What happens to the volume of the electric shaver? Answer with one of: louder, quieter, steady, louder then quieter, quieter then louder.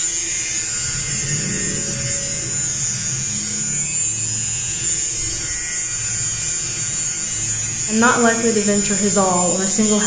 steady.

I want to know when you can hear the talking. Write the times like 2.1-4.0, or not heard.
7.8-10.0.